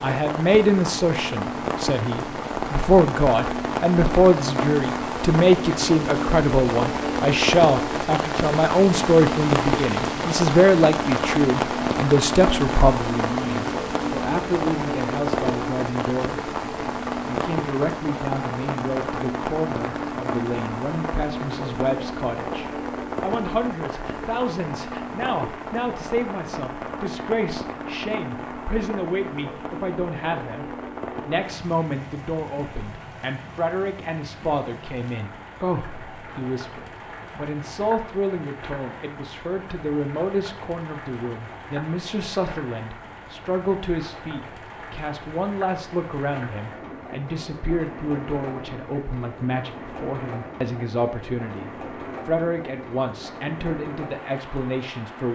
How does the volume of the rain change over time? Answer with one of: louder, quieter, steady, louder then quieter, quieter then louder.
quieter.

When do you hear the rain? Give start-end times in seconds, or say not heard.
0.0-55.3.